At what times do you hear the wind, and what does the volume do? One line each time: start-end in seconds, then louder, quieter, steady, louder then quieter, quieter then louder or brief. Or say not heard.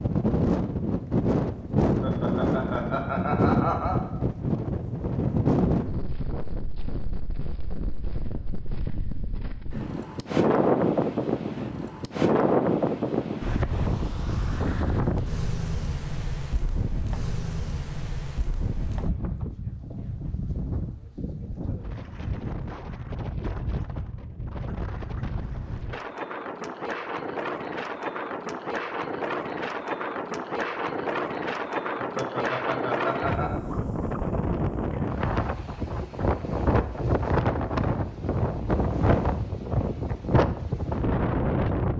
0.0-41.9 quieter then louder.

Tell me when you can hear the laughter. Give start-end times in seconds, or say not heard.
1.9-4.0, 32.0-33.6.